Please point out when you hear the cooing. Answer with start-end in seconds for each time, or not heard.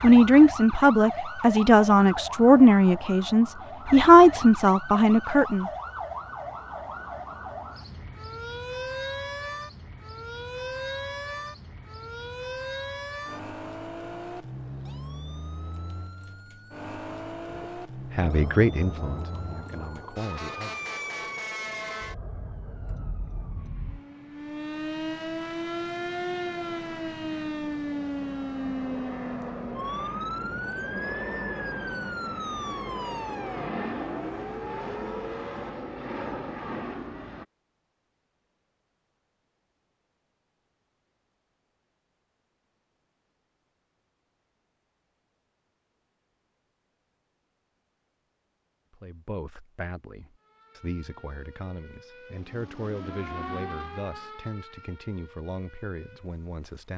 not heard.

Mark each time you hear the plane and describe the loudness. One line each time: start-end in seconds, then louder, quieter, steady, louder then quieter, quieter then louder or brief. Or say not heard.
18.2-37.5 quieter then louder.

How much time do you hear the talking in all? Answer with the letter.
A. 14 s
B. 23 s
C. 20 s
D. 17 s
D.